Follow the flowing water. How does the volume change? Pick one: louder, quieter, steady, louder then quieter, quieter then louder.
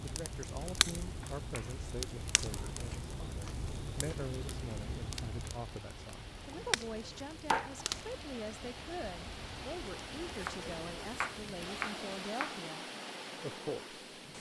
louder.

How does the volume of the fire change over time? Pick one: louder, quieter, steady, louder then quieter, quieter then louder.
quieter.